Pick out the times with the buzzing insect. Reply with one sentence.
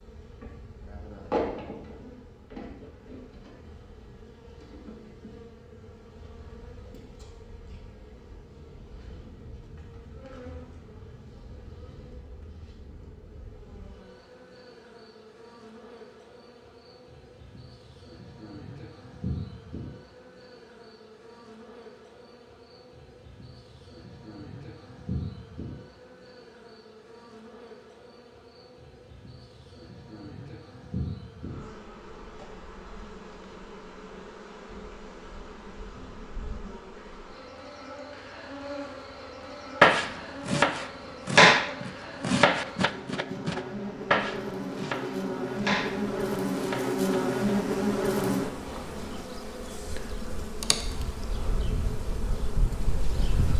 You can hear the buzzing insect from 0.0 to 53.5 s.